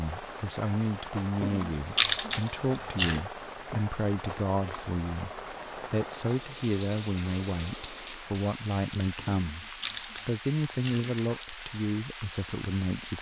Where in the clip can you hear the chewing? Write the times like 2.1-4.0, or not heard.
1.4-3.2, 9.4-11.1.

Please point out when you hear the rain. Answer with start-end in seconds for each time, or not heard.
0.0-13.1.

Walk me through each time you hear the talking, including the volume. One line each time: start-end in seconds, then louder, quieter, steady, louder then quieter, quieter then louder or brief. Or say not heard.
0.0-13.1 steady.